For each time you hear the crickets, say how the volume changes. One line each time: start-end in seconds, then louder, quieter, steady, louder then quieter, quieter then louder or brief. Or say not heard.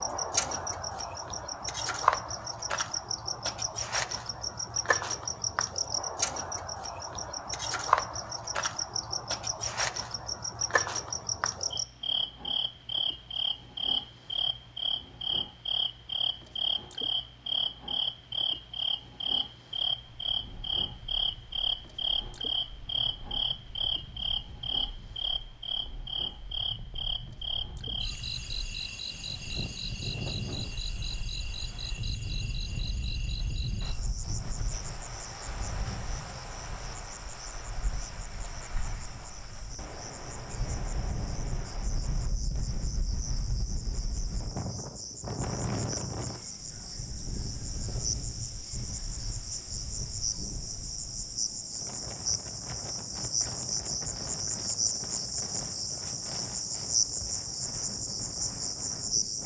0.0-59.4 quieter then louder.